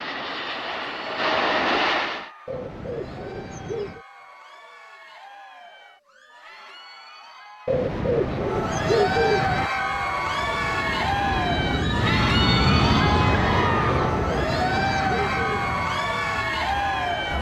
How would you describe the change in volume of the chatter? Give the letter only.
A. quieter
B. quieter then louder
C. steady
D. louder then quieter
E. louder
E.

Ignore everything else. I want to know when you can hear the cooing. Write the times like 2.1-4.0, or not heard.
2.5-4.0, 7.7-9.7, 14.1-15.9.